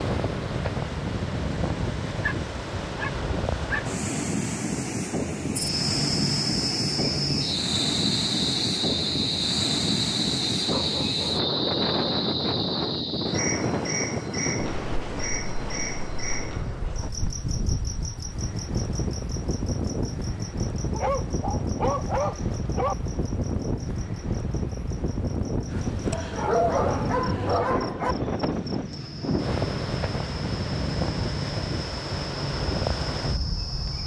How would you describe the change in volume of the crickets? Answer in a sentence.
The volume of the crickets goes down, then up.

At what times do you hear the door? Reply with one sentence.
You can't hear the door here.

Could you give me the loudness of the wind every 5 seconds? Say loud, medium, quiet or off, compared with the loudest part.
loud, loud, loud, medium, loud, loud, loud.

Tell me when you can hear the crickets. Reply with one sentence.
You can hear the crickets from 5.5 to 34.0 s.